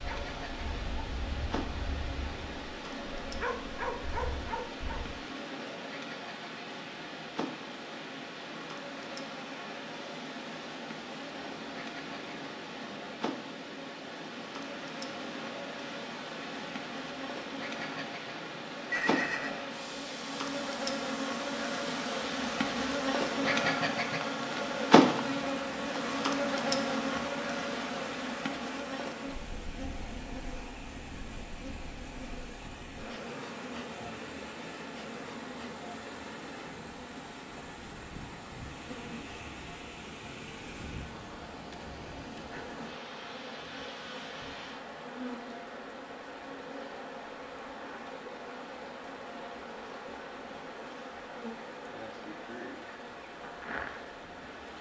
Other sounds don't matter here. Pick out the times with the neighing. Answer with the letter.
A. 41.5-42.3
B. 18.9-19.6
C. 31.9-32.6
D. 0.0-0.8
B.